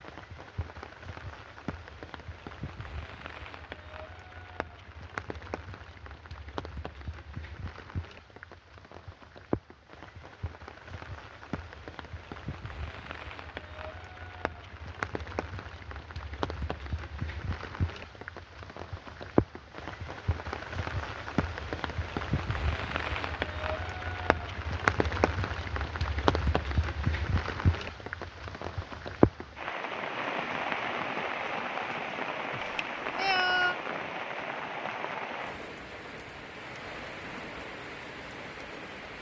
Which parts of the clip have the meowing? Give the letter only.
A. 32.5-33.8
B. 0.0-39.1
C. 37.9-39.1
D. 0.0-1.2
A.